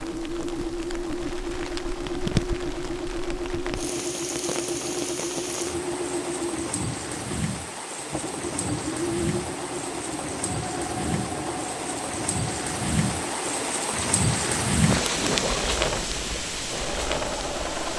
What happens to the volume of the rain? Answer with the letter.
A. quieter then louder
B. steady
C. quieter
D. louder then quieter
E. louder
E.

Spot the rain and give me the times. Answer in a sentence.
The rain can be heard from 0.0 to 17.9 s.